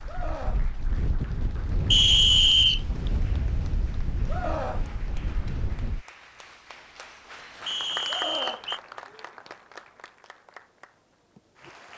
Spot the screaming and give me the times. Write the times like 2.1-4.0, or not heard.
0.1-0.7, 4.2-4.8, 8.1-9.3.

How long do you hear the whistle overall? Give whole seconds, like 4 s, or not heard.
2 s.